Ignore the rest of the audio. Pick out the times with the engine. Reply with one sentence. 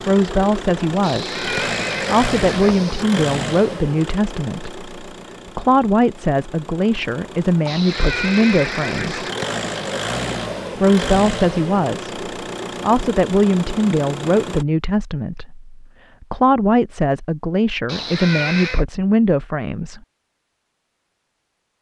You can hear the engine from 0.0 to 14.7 s.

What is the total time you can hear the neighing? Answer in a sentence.
The neighing can be heard for 5 seconds in total.